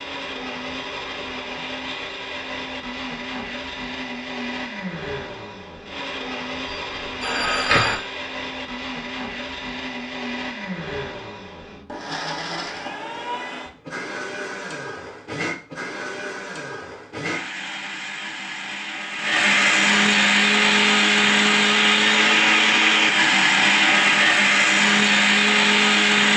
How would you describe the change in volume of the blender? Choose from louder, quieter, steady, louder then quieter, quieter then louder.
louder.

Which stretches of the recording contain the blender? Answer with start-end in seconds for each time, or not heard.
0.0-26.3.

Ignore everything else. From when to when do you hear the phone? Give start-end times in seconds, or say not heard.
6.7-8.0.